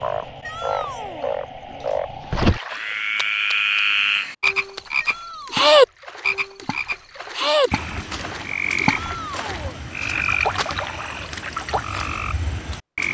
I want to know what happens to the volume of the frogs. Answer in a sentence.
The loudness of the frogs goes up, then down.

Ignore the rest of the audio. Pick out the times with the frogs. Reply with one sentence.
The frogs can be heard from 0.0 to 13.0 s.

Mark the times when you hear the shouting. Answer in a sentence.
You can hear the shouting from 0.4 to 1.4 s, from 5.0 to 5.7 s and from 8.8 to 9.8 s.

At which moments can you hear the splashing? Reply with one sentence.
The splashing can be heard from 1.7 to 3.9 s and from 4.5 to 11.8 s.